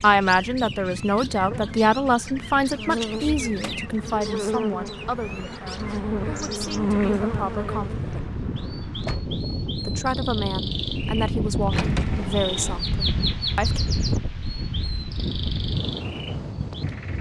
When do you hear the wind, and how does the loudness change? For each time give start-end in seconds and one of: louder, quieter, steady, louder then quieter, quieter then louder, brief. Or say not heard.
0.0-17.1 louder.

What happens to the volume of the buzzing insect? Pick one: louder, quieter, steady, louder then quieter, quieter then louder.
louder.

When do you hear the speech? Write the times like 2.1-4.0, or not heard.
0.0-7.9, 9.8-13.8.